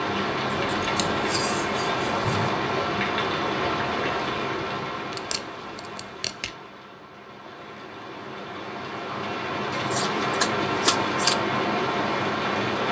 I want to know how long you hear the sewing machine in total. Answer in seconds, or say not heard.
not heard.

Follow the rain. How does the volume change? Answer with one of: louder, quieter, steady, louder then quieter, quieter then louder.
quieter then louder.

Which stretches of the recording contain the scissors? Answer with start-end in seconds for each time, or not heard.
0.5-2.5, 5.1-6.5, 9.7-11.3.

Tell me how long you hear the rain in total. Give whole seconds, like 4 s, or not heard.
13 s.